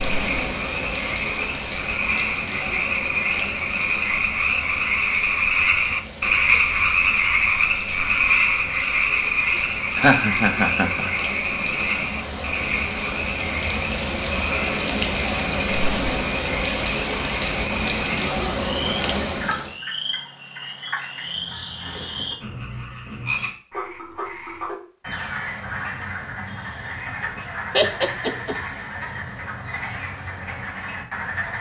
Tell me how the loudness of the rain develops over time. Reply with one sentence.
The loudness of the rain goes down, then up.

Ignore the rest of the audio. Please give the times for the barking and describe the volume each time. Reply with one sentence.
You can't hear the barking here.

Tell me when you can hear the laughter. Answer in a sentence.
The laughter can be heard from 9.6 to 11.2 s and from 27.7 to 28.6 s.